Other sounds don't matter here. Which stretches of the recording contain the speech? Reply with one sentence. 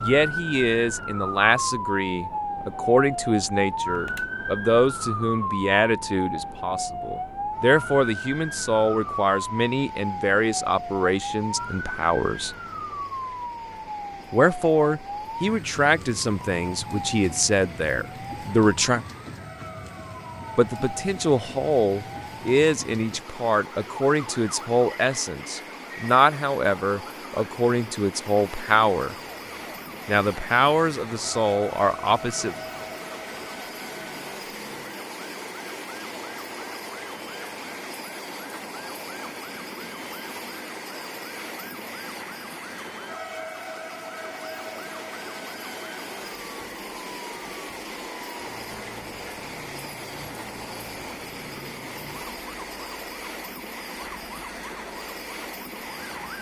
The speech can be heard from 0.0 to 12.5 s, from 14.3 to 19.1 s, from 20.6 to 29.1 s and from 30.1 to 32.5 s.